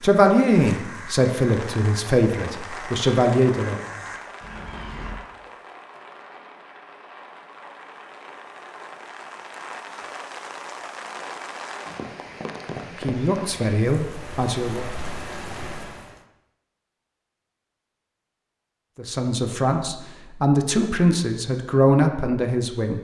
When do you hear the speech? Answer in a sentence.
You can hear the speech from 0.0 to 3.9 s, from 13.0 to 14.8 s and from 18.9 to 22.9 s.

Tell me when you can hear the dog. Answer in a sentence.
The dog can't be heard in this clip.